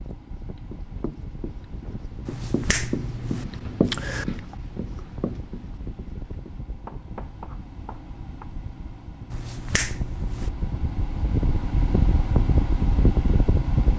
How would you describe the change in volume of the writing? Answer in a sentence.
The loudness of the writing goes up, then down.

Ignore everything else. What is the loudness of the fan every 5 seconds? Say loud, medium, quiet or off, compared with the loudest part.
quiet, quiet, loud.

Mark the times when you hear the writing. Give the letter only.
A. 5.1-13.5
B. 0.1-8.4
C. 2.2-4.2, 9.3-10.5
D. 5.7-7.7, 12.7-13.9
B.